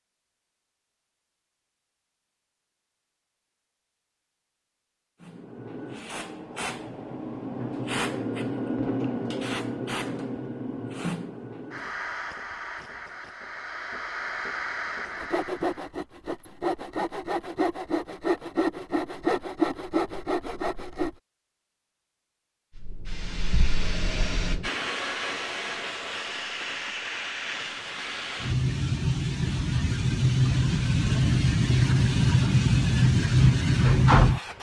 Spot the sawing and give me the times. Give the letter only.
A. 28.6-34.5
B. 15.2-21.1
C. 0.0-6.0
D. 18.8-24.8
B.